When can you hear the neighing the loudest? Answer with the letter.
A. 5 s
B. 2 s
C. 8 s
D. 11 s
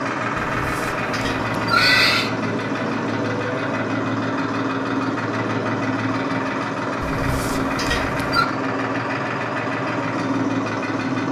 B.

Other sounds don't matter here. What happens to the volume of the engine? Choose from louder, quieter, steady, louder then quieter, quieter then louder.
steady.